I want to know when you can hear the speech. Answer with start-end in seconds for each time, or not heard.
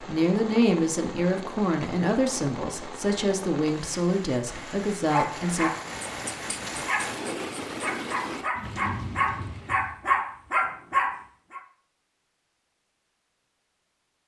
0.0-5.7.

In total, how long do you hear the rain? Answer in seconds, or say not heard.
10 s.